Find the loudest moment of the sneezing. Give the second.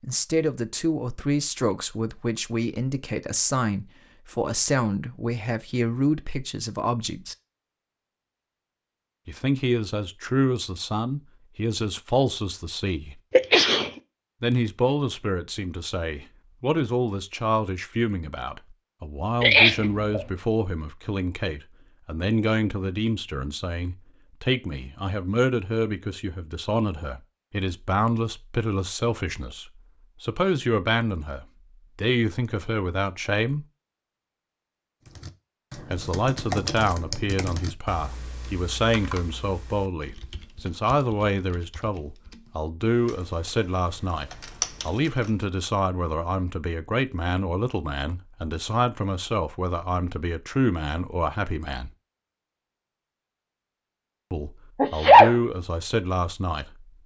55 s.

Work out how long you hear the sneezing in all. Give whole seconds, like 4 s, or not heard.
2 s.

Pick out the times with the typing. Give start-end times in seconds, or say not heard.
35.0-45.5.